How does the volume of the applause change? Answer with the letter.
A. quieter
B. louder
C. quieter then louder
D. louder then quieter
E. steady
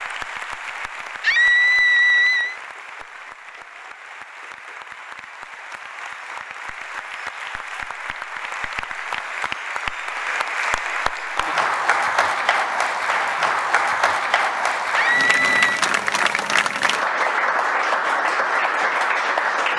B.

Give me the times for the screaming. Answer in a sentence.
The screaming can be heard from 1.2 to 2.5 s and from 14.9 to 15.8 s.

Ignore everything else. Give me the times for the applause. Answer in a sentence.
You can hear the applause from 0.0 to 19.7 s.